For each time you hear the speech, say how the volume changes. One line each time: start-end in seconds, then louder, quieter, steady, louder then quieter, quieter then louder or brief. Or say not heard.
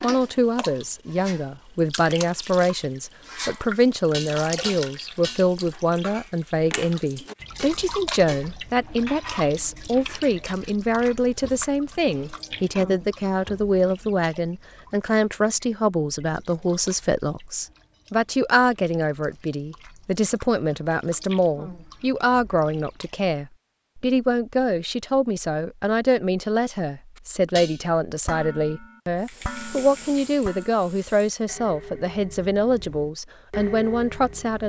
0.0-34.6 steady.